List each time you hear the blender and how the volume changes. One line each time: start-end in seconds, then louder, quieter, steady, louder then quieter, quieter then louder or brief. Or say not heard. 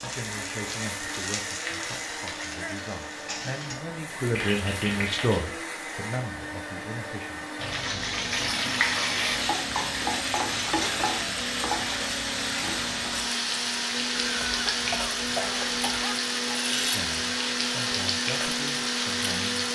0.0-19.7 louder.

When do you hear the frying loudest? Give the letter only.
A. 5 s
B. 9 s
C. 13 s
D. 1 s
B.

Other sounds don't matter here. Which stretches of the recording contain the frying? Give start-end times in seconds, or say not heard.
0.0-5.5, 7.5-19.7.